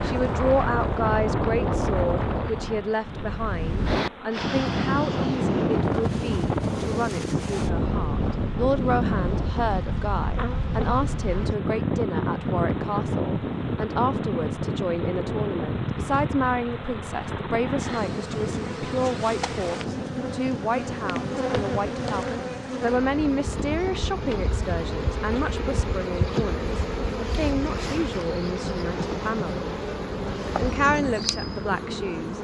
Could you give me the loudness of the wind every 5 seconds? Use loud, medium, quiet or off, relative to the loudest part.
loud, loud, loud, medium, medium, quiet, medium.